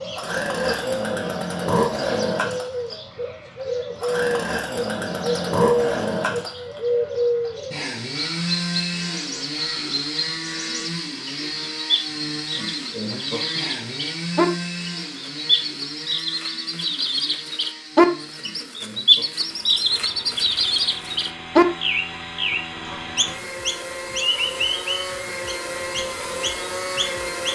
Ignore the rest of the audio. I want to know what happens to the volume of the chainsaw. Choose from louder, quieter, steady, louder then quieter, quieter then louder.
quieter then louder.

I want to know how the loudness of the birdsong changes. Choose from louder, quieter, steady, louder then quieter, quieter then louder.
louder then quieter.